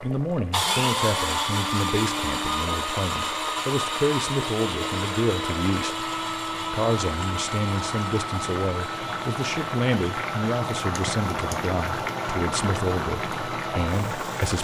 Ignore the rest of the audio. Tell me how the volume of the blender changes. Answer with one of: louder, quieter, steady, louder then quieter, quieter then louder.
quieter.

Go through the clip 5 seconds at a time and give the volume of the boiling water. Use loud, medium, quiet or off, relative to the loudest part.
medium, medium, loud.